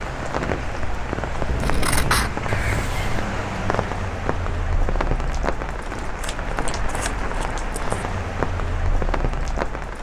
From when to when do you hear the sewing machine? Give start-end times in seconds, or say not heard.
not heard.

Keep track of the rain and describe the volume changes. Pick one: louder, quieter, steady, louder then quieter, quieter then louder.
steady.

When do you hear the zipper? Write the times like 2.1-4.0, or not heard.
2.5-3.2.